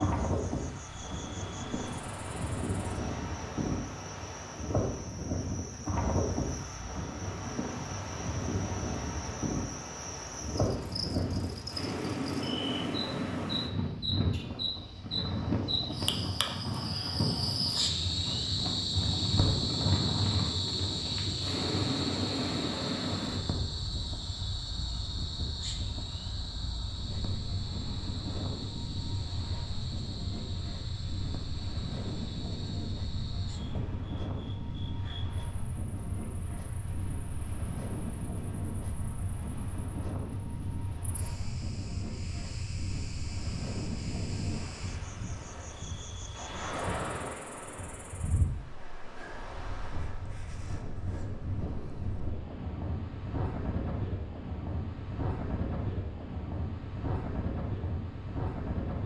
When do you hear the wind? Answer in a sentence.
You can hear the wind from 0.0 to 59.0 s.